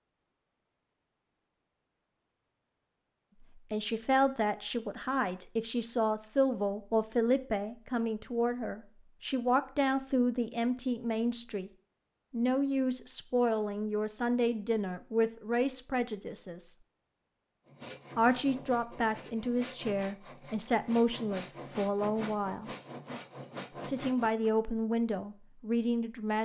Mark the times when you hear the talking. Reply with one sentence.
You can hear the talking from 3.5 to 11.7 s, from 12.3 to 16.8 s, from 18.1 to 22.7 s and from 23.8 to 26.4 s.